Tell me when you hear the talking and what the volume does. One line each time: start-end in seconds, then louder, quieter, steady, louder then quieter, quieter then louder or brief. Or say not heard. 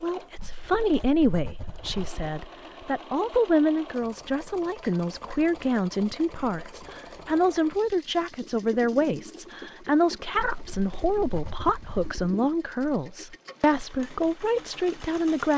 0.0-15.5 steady.